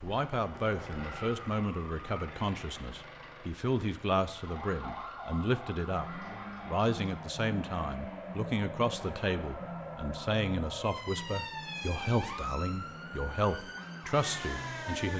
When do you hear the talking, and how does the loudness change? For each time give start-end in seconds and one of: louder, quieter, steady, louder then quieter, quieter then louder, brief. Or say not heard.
0.0-15.1 steady.